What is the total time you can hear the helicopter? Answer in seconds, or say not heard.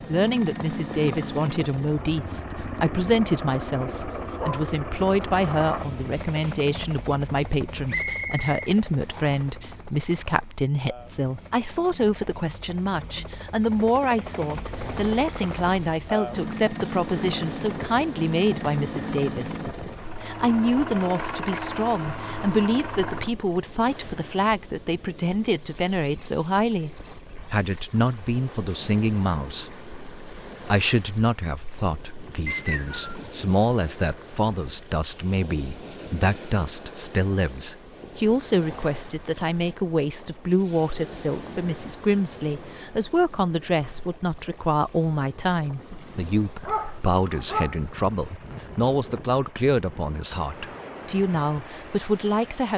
23 s.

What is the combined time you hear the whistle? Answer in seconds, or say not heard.
2 s.